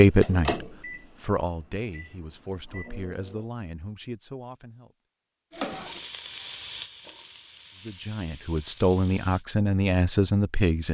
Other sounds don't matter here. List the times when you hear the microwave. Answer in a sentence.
You can hear the microwave from 0.2 to 3.5 s.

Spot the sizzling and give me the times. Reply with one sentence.
The sizzling can be heard from 5.5 to 9.4 s.